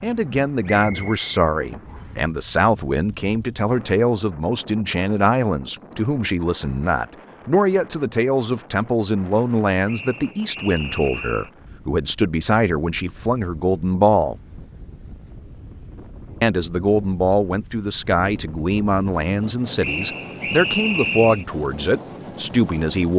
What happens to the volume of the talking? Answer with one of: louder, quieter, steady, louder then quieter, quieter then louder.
steady.